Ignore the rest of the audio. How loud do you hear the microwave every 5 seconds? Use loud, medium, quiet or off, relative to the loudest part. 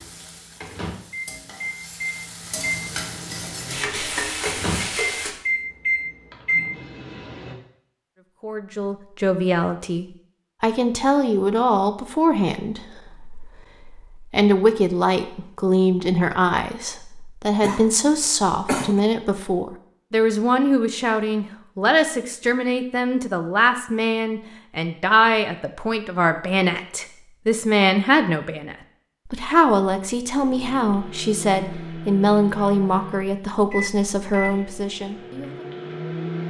medium, loud, off, off, off, off, medium, medium.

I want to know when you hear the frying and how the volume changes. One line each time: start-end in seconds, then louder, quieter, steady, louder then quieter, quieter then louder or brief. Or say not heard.
0.0-5.3 louder.